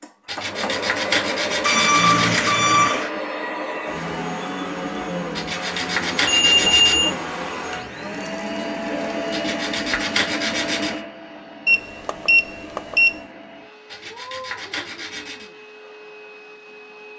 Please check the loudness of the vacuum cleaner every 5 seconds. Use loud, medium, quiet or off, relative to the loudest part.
loud, loud, medium, quiet.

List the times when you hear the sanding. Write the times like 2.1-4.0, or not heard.
0.2-2.5, 5.3-7.0, 9.3-11.0, 13.9-15.5.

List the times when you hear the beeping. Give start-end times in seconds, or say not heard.
1.6-3.1, 6.2-7.2, 11.7-13.2.